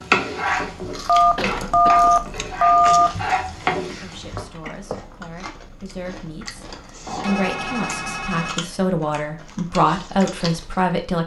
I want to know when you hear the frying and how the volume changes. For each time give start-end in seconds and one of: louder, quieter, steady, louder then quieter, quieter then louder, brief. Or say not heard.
0.0-4.5 quieter then louder.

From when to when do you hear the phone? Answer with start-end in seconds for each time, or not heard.
1.1-3.1, 7.0-8.6.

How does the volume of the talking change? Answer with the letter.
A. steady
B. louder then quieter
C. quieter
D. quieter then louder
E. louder
E.